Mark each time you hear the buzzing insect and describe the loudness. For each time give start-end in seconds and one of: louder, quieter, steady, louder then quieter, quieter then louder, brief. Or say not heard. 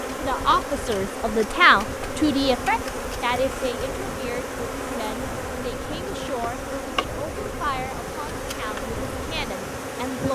0.0-10.3 steady.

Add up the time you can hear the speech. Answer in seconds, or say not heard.
10 s.